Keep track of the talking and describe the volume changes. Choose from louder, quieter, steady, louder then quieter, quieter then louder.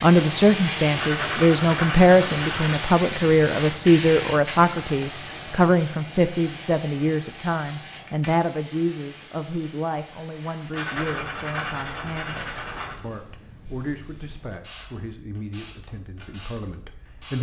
quieter.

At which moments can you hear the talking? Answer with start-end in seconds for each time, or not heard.
0.0-17.3.